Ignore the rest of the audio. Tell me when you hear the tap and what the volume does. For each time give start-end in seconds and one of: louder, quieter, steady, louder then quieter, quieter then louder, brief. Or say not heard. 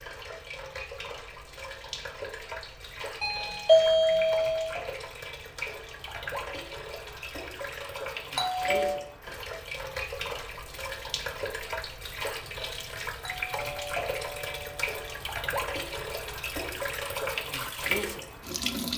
0.0-18.9 louder.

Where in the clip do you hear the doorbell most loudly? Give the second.
4 s.